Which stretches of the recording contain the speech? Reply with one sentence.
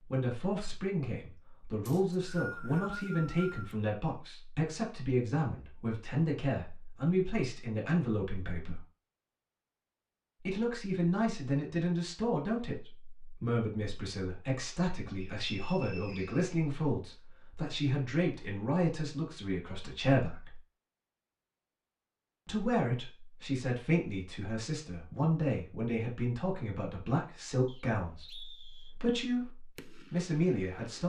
The speech can be heard from 0.1 to 8.8 s, from 10.4 to 20.6 s and from 22.4 to 31.0 s.